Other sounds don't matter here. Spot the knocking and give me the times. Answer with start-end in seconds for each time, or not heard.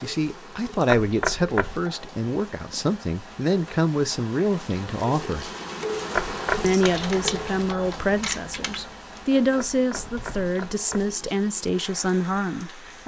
0.8-1.8, 6.2-6.8, 9.6-11.2.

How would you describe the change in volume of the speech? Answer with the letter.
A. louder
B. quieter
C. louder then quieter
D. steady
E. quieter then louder
D.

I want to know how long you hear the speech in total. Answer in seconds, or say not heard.
12 s.